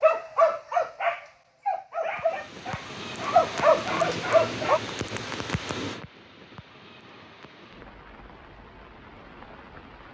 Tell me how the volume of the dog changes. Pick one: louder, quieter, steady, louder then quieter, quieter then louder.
quieter then louder.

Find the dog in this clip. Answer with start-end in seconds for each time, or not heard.
0.0-4.8.